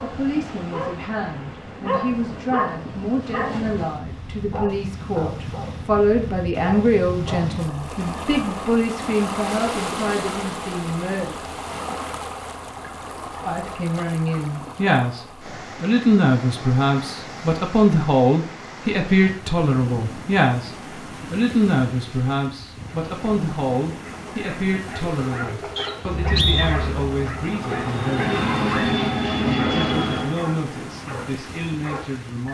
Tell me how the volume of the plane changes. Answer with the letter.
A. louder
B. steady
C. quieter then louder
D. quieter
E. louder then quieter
A.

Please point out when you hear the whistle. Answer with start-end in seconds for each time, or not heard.
25.8-26.8.